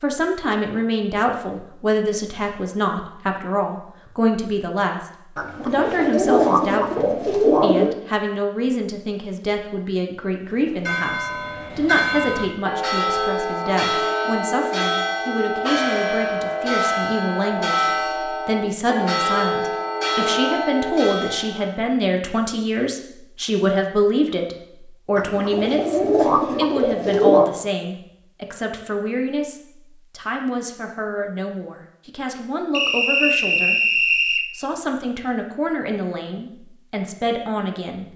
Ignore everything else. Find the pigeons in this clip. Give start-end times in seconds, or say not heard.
5.3-8.0, 25.1-27.5.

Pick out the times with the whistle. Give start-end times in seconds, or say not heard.
32.7-34.5.